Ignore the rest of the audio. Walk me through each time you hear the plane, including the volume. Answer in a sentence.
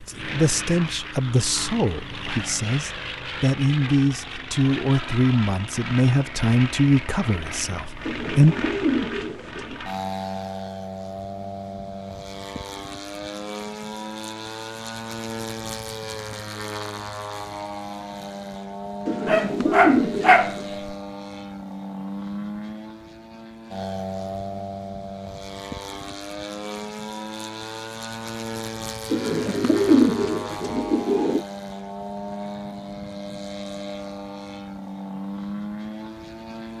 The plane can be heard from 0.0 to 36.7 s, at a steady volume.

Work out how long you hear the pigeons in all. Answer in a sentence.
You can hear the pigeons for 6 seconds altogether.